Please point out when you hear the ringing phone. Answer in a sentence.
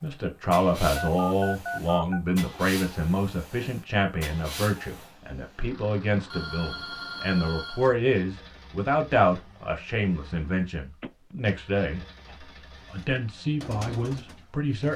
The ringing phone can be heard from 0.9 to 2.2 s, from 6.3 to 8.0 s and from 11.0 to 11.6 s.